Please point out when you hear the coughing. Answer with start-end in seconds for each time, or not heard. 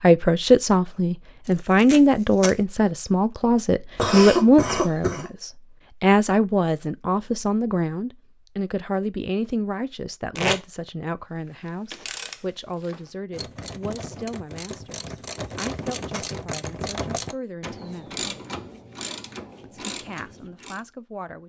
4.0-5.3.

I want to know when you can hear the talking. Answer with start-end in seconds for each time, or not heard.
0.0-18.4, 19.6-21.4.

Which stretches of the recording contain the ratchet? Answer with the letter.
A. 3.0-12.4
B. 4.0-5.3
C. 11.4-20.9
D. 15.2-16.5
C.